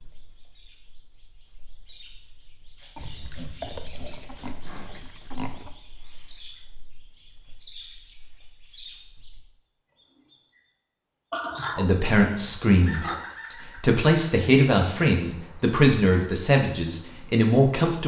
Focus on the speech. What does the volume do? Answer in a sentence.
The loudness of the speech stays about the same.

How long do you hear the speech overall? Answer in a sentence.
The speech can be heard for 6 seconds in total.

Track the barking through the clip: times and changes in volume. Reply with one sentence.
The barking can't be heard in this clip.